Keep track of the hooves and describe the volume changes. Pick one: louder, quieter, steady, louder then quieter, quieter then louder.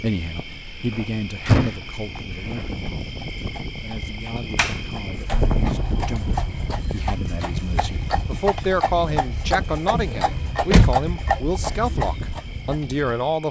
louder.